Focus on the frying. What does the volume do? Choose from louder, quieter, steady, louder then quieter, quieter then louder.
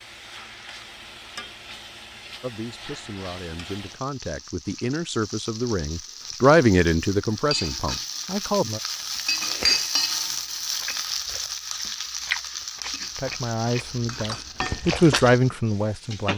louder then quieter.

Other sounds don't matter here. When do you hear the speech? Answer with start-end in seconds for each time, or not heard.
2.4-8.8, 13.2-16.3.